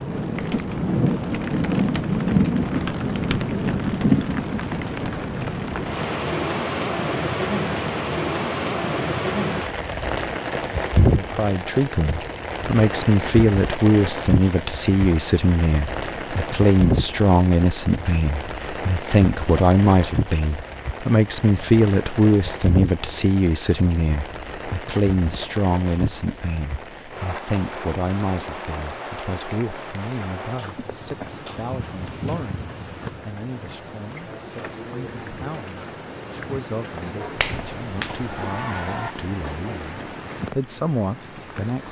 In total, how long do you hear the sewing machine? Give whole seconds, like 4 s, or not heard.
not heard.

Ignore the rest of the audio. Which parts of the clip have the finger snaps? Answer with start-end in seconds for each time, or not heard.
37.2-39.1.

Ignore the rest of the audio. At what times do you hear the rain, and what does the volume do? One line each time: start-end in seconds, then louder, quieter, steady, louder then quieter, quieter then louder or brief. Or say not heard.
0.0-41.8 quieter.